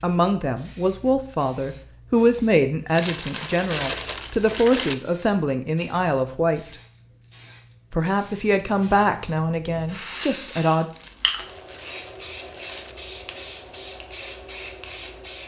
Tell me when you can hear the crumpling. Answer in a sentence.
You can hear the crumpling from 3.0 to 5.0 s and from 10.9 to 12.9 s.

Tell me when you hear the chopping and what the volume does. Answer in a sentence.
You can't hear the chopping here.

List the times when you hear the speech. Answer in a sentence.
You can hear the speech from 0.0 to 6.8 s and from 7.9 to 10.8 s.